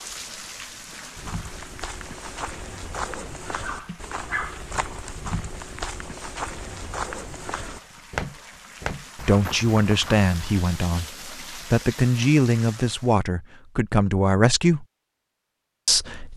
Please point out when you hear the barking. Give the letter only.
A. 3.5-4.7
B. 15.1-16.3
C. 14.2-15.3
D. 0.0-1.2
A.